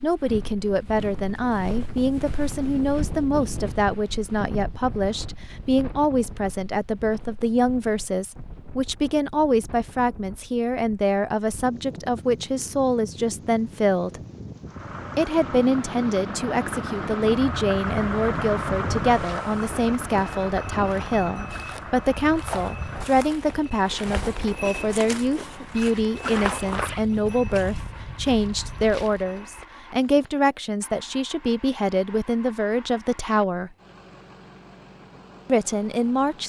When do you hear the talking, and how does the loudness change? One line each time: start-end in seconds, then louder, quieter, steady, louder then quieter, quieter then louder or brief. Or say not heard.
0.0-14.2 steady
15.2-33.7 steady
35.5-36.4 brief.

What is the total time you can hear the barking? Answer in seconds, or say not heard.
not heard.